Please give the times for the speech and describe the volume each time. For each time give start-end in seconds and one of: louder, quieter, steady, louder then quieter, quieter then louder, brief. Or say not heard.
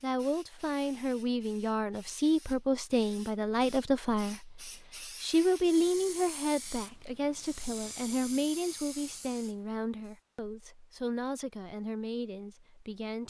0.0-13.2 quieter.